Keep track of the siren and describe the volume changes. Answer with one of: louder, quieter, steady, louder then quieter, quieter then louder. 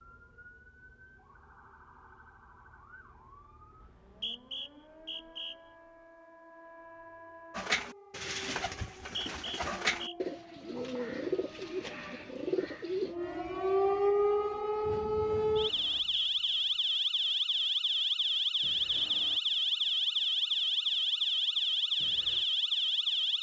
louder.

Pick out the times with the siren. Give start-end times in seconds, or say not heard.
0.0-23.3.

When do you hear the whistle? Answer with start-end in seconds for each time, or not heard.
3.8-5.5, 8.9-10.2, 15.8-16.6.